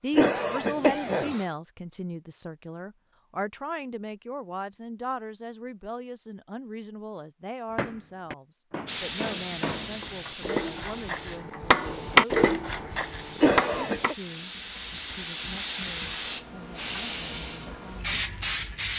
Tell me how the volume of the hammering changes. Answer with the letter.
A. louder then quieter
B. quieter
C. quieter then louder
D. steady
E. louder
A.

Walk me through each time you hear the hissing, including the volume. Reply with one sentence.
You can hear the hissing briefly from 0.0 to 1.6 s; and from 8.8 to 18.9 s, getting quieter then louder.